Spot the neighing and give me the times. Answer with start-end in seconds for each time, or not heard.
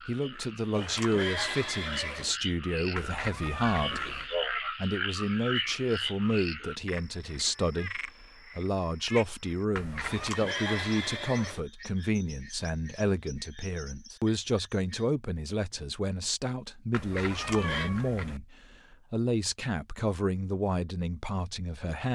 0.7-2.4, 10.0-11.6, 17.2-17.9.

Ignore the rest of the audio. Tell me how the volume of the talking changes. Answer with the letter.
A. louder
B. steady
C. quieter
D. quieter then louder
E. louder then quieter
B.